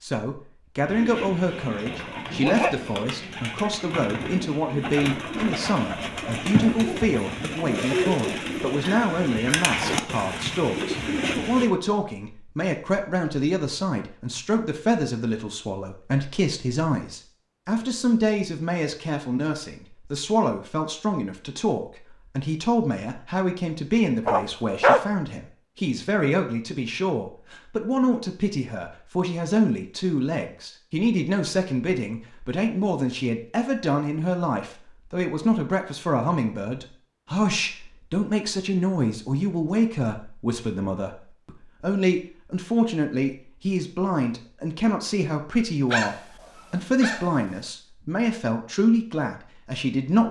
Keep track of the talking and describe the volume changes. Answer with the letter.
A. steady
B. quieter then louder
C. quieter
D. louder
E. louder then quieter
A.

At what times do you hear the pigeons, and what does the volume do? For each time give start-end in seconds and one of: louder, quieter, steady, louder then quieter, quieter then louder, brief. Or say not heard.
0.8-11.7 louder.